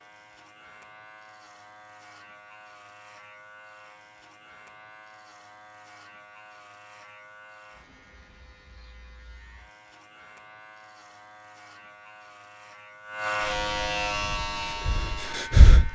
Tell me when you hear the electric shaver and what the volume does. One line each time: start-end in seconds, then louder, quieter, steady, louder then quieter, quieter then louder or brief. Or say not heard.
0.0-15.9 louder.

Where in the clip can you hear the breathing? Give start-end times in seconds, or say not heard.
14.1-15.9.